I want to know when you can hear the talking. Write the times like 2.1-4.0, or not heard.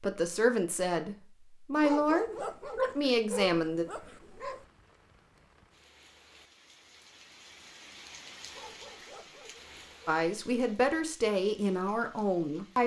0.0-3.9, 10.1-12.8.